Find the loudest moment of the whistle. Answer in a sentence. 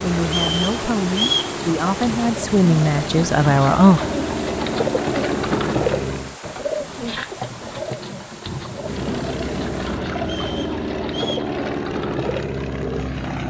The volume of the whistle peaks at 1 second.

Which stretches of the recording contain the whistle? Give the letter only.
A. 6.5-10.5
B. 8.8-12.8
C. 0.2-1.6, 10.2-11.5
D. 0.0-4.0
C.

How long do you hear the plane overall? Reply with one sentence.
You can hear the plane for 11 seconds altogether.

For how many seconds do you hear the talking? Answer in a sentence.
The talking can be heard for 4 seconds in total.